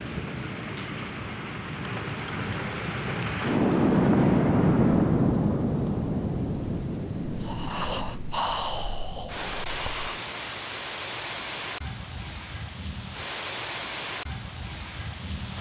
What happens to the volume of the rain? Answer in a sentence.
The loudness of the rain goes up, then down.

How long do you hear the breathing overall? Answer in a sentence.
The breathing can be heard for 3 seconds in total.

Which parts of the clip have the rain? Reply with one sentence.
You can hear the rain from 0.0 to 15.5 s.